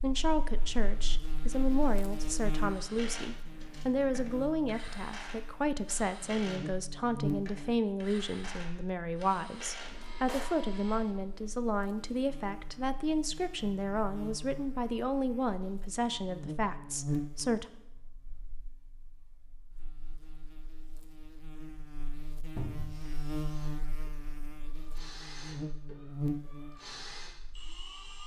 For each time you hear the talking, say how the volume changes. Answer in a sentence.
You can hear the talking from 0.0 to 17.6 s, at a steady volume.